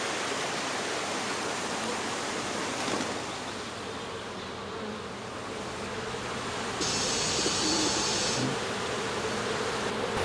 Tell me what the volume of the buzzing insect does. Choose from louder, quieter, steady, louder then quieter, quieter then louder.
louder.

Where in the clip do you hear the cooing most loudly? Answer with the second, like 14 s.
8 s.